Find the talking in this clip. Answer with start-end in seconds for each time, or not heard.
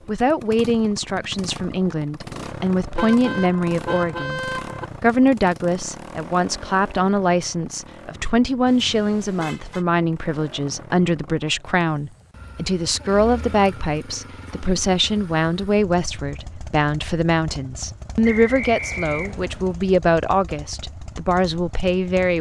0.1-22.3.